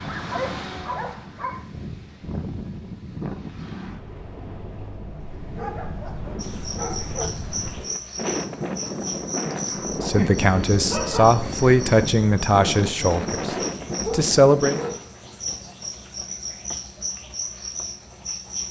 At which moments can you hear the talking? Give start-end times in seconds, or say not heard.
10.0-14.8.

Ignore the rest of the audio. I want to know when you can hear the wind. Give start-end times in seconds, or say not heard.
0.0-15.0.